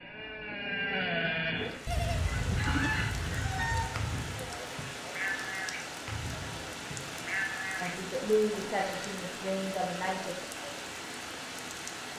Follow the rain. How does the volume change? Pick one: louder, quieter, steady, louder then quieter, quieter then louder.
steady.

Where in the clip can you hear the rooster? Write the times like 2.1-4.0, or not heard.
2.4-4.0.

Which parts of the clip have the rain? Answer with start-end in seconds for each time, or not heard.
1.6-12.1.